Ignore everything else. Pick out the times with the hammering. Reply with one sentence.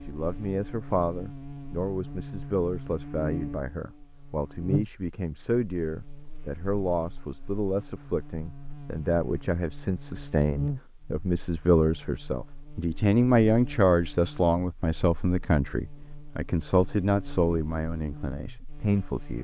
You can't hear the hammering here.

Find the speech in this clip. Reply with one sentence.
You can hear the speech from 0.1 to 19.3 s.